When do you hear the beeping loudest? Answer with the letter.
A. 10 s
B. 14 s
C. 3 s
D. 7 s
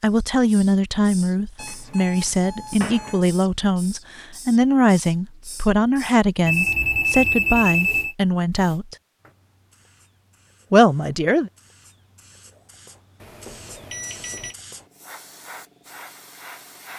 D.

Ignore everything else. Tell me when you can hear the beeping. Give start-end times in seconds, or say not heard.
1.6-3.2, 6.5-8.2, 13.2-14.6.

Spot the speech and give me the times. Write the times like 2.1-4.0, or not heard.
0.0-8.9, 10.7-11.5.